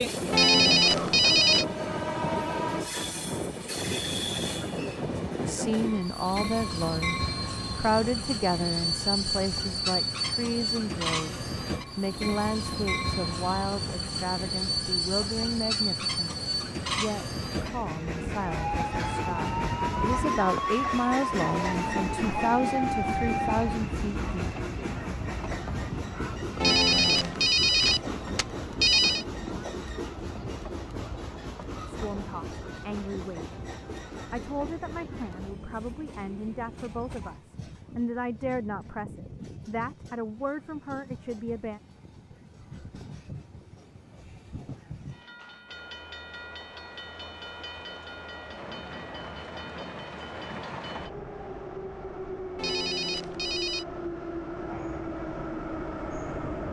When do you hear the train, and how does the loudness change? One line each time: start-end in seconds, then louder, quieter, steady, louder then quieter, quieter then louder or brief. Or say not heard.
0.0-56.6 quieter then louder.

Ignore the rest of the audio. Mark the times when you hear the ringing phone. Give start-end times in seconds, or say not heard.
0.3-1.6, 26.6-29.2, 52.5-53.9.